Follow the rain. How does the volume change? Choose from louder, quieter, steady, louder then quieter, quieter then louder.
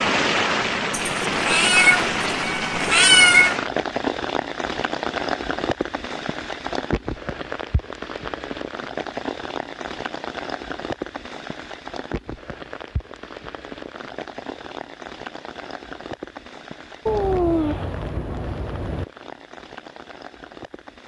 quieter.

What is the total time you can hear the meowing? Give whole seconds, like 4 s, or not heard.
5 s.